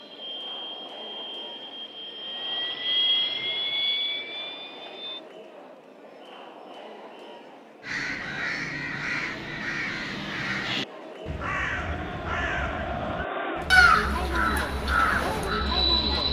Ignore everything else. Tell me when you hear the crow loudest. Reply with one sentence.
The loudest moment of the crow is at 14 seconds.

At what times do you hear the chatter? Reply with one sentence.
You can hear the chatter from 0.0 to 16.2 s.